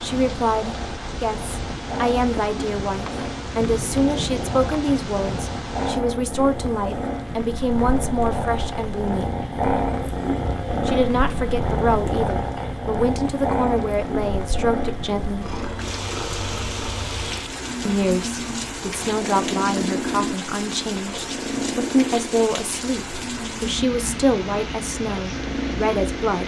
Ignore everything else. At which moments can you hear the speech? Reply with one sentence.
The speech can be heard from 0.0 to 9.3 s, from 10.8 to 15.5 s and from 17.9 to 26.4 s.